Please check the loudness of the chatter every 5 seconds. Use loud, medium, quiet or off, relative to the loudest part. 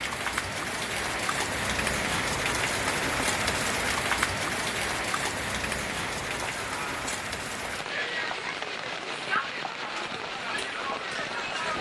off, loud, loud.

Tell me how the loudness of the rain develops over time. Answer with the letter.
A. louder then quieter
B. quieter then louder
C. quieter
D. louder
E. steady
C.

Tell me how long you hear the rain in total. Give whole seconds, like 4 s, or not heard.
12 s.